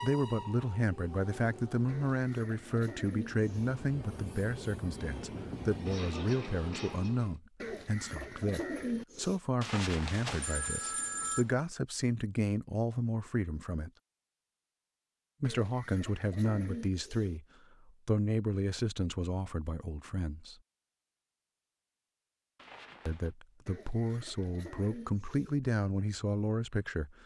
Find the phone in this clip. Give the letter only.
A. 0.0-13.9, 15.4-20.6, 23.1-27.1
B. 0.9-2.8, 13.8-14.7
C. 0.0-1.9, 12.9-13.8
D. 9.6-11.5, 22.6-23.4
D.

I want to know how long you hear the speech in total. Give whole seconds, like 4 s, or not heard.
23 s.